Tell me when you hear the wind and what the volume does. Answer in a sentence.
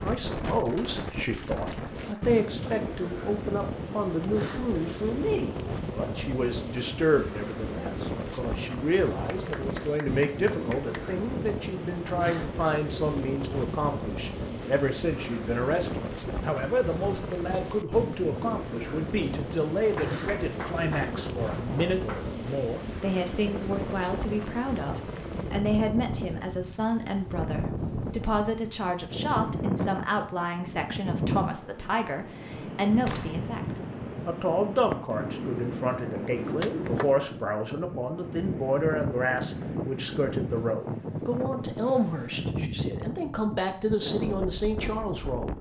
You can hear the wind from 0.0 to 45.5 s, at a steady volume.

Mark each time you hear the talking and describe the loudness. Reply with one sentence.
You can hear the talking from 0.0 to 45.5 s, at a steady volume.